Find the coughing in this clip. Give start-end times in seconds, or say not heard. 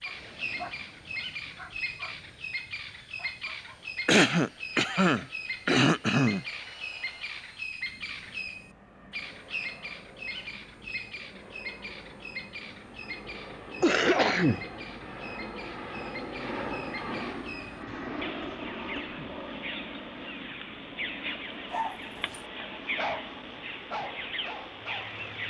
4.0-6.5, 13.8-14.7, 17.9-19.4.